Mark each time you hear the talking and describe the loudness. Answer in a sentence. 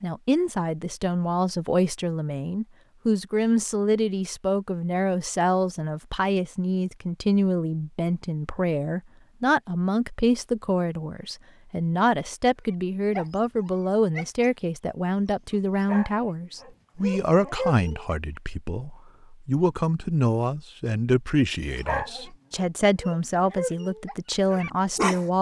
The talking can be heard from 0.0 to 25.3 s, at a steady volume.